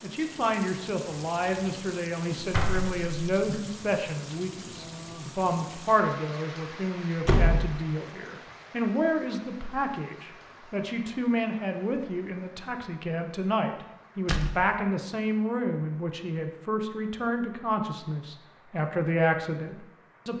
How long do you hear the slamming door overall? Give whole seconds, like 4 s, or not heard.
2 s.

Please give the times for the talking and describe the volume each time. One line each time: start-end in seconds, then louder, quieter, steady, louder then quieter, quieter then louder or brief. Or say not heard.
0.0-20.3 steady.